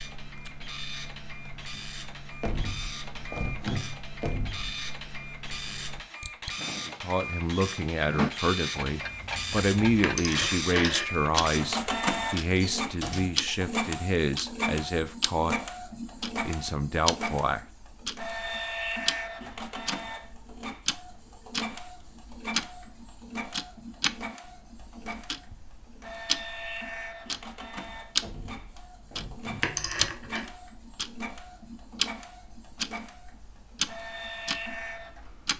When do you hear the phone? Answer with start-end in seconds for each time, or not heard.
10.0-11.1, 29.6-30.4.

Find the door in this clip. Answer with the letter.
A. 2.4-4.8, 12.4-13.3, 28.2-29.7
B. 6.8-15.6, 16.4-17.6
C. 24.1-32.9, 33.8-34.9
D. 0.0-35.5
A.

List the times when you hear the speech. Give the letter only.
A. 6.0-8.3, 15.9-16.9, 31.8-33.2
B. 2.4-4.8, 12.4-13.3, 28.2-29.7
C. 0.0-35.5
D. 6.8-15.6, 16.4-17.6
D.